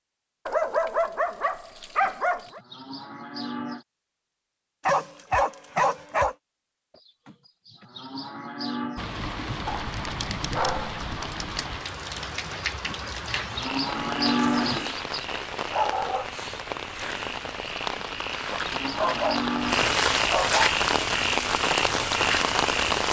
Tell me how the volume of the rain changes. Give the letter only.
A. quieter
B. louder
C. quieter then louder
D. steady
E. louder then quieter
B.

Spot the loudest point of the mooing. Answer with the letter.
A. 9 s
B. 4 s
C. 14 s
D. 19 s
C.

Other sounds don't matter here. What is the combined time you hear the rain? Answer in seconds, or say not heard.
14 s.